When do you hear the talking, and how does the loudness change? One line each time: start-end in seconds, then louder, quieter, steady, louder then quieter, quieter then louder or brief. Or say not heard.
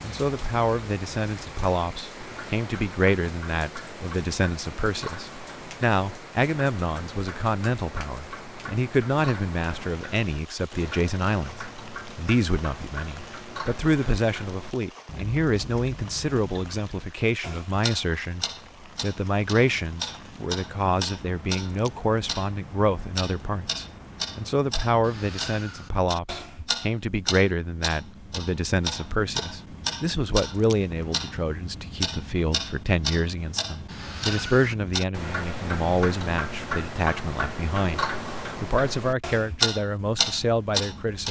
0.0-11.6 steady
12.2-41.2 steady.